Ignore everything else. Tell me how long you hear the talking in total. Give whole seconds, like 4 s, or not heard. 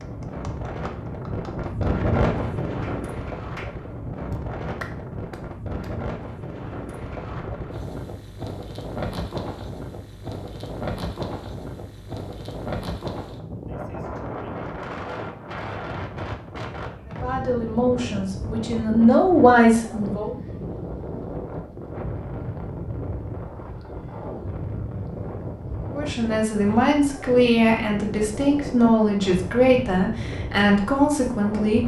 9 s.